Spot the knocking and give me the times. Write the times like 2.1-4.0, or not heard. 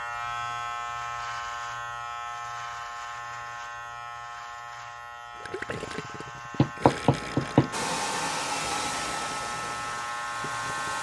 6.5-7.7.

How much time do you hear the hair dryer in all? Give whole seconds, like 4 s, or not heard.
3 s.